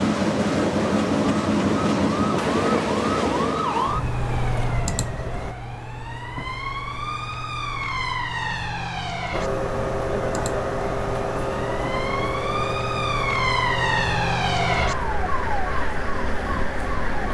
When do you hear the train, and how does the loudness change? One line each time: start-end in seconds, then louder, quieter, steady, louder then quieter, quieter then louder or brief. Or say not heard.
0.0-5.5 quieter
9.3-17.3 quieter.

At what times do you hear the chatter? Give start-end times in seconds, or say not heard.
not heard.